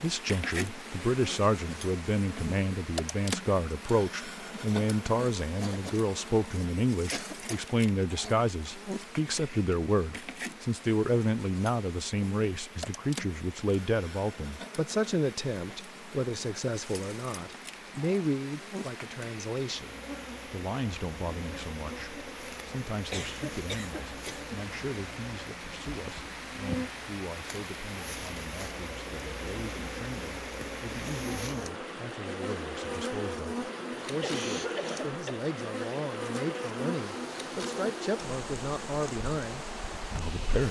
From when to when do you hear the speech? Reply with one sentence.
You can hear the speech from 0.0 to 40.6 s.